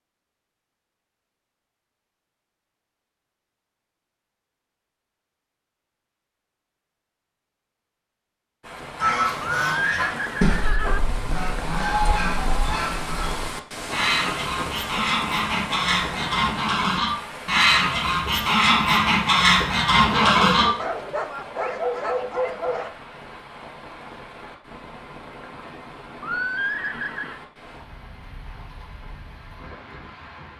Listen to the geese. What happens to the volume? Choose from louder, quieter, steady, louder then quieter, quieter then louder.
louder.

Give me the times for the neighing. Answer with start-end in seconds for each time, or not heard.
9.4-11.0, 26.2-27.4.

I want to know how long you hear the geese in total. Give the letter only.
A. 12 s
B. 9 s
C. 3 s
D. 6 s
A.